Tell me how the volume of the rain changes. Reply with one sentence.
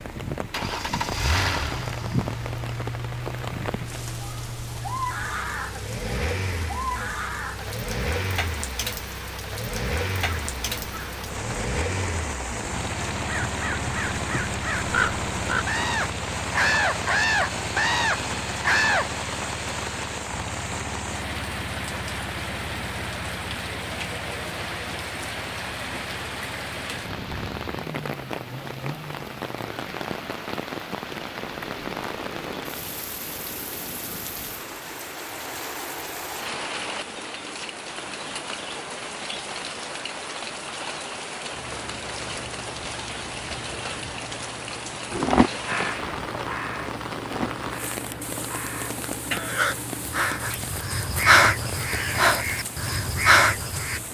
The volume of the rain stays about the same.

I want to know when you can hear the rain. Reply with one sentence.
You can hear the rain from 0.0 to 54.1 s.